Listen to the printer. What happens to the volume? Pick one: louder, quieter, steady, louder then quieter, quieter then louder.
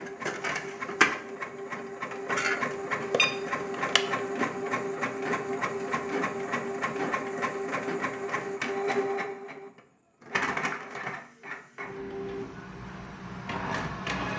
quieter.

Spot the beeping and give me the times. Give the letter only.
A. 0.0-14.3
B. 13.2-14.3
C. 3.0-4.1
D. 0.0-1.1
C.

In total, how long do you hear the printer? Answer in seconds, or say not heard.
14 s.